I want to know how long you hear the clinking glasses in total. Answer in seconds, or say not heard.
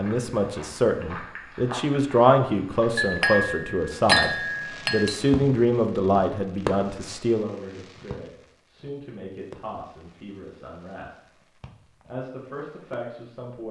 2 s.